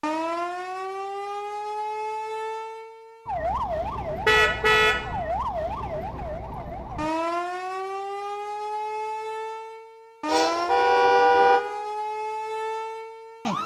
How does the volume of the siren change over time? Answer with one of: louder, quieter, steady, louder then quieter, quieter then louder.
steady.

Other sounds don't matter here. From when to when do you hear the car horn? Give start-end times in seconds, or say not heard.
4.2-5.1, 10.2-11.6.